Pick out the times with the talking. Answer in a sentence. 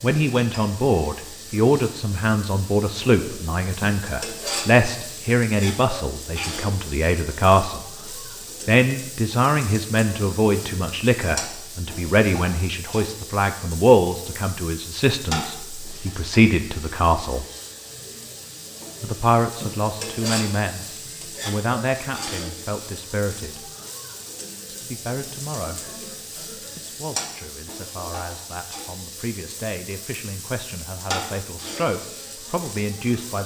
The talking can be heard from 0.0 to 7.8 s, from 8.7 to 17.4 s, from 19.0 to 20.9 s, from 21.4 to 23.7 s and from 24.7 to 33.4 s.